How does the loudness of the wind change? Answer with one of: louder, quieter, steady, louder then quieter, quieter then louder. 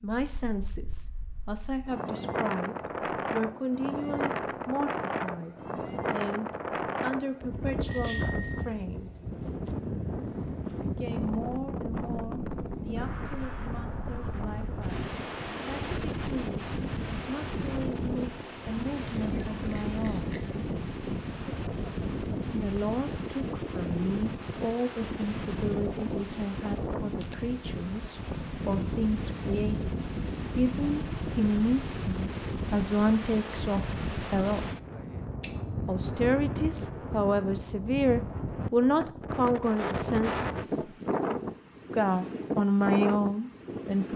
steady.